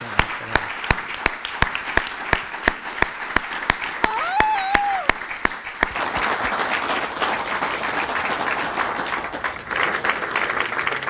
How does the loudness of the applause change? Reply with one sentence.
The loudness of the applause stays about the same.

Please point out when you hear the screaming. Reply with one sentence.
The screaming can be heard from 4.0 to 5.1 s.